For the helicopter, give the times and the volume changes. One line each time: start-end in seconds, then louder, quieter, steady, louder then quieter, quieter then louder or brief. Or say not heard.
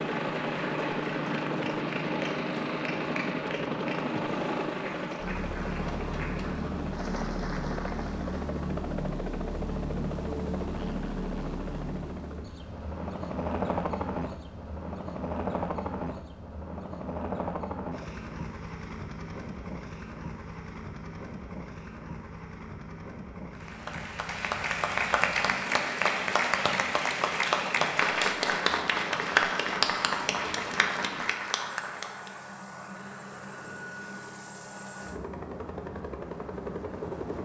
0.0-37.4 quieter.